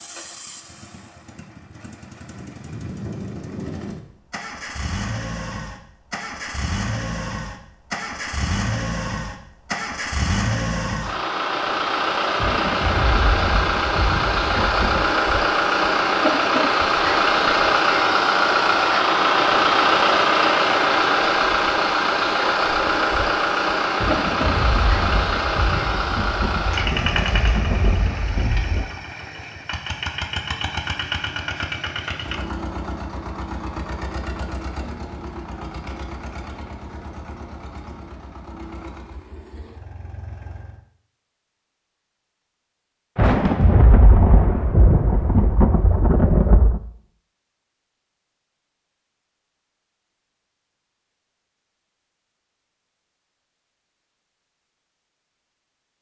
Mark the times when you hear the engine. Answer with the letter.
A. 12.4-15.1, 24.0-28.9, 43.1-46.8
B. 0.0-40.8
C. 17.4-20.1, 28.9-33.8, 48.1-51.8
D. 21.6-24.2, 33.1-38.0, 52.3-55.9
B.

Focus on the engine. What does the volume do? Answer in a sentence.
The loudness of the engine goes up, then down.